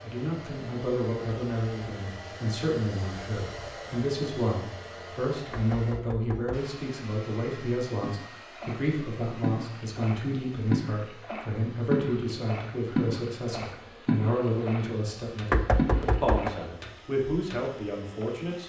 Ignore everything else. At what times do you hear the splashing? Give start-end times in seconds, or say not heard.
8.0-18.3.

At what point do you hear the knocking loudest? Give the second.
16 s.